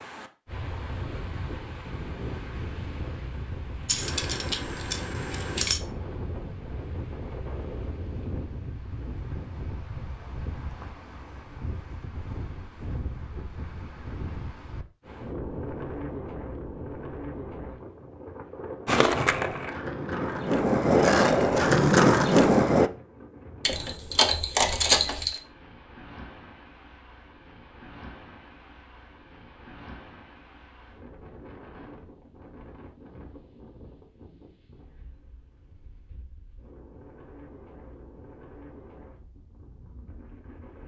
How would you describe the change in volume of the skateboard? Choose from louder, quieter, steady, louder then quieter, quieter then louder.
louder.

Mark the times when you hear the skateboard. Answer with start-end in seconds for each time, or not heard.
18.9-22.9.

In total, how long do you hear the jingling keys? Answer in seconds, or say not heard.
4 s.